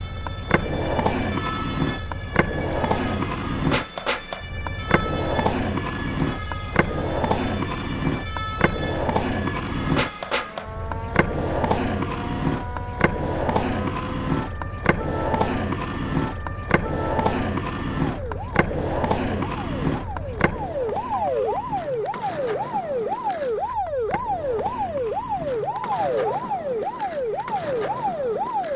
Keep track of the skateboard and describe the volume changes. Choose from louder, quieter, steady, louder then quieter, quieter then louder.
quieter.